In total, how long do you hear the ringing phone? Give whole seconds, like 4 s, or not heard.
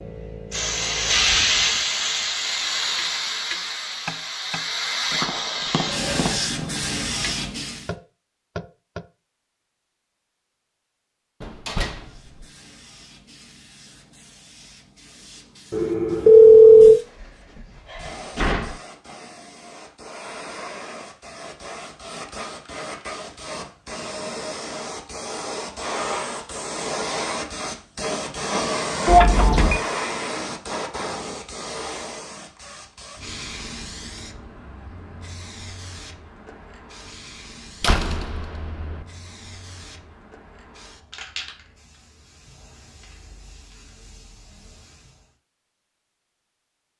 2 s.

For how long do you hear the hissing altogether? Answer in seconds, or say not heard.
41 s.